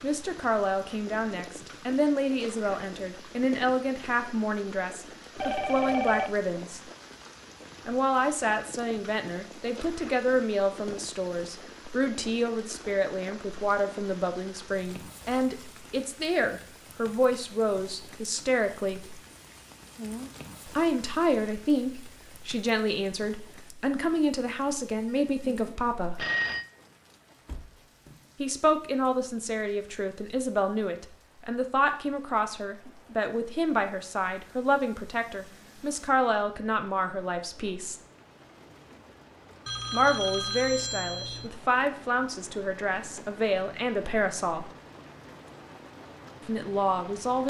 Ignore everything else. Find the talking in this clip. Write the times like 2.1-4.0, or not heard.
0.0-6.8, 7.8-19.2, 20.6-26.2, 28.4-38.0, 39.9-44.7, 46.5-47.4.